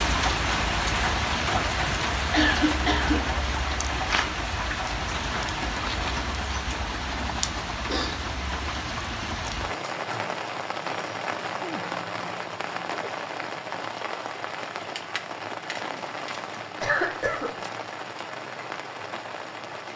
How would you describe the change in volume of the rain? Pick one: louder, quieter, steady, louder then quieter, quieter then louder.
quieter.